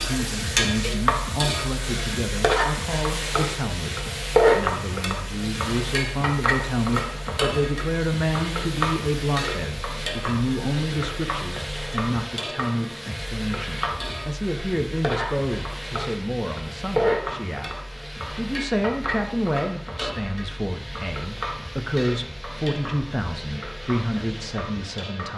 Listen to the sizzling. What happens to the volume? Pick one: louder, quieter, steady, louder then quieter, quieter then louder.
quieter.